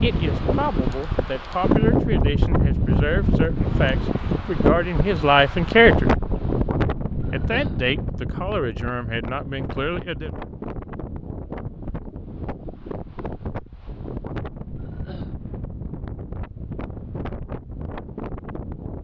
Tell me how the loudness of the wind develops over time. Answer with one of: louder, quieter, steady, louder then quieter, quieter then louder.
quieter.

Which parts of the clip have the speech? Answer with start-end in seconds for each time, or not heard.
0.0-6.1, 7.3-10.3.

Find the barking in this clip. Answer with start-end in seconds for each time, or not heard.
not heard.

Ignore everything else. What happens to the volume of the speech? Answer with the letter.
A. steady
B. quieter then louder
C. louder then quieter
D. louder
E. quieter
C.